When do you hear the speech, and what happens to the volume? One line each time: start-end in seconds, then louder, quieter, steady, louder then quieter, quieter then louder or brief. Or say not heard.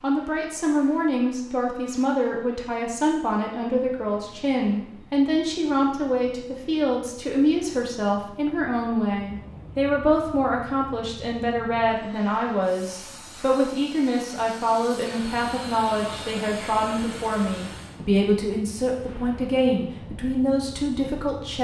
0.0-21.5 steady.